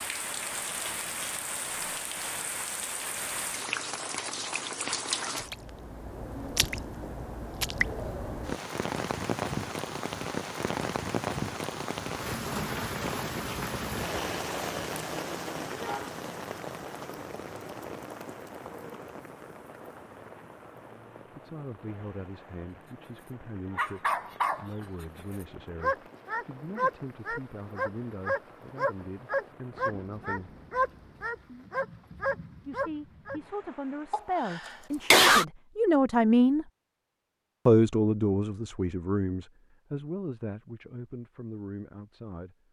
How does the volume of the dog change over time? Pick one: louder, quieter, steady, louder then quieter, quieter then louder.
steady.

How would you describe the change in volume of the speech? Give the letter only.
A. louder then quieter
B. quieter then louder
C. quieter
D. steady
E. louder
A.